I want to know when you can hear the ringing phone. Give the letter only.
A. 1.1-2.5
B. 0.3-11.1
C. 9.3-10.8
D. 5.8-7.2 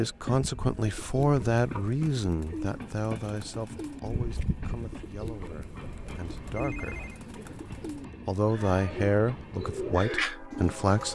D.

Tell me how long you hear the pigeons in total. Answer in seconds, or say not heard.
11 s.